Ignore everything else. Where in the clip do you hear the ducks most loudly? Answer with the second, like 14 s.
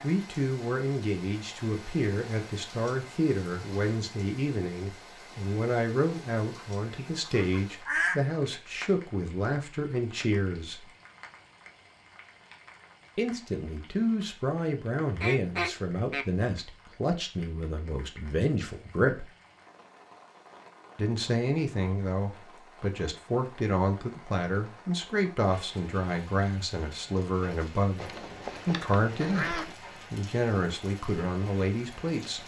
8 s.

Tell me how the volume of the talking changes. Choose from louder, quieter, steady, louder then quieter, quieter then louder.
steady.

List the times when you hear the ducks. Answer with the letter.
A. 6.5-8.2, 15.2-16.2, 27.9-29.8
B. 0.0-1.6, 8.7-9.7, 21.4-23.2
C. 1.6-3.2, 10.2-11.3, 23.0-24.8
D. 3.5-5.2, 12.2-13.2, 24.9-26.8
A.